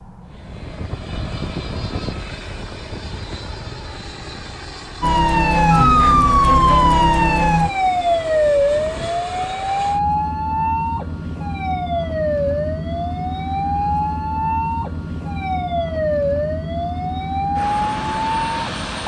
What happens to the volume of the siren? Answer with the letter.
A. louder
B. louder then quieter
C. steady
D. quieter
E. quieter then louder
D.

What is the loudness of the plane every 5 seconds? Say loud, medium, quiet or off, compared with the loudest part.
loud, medium, loud, loud.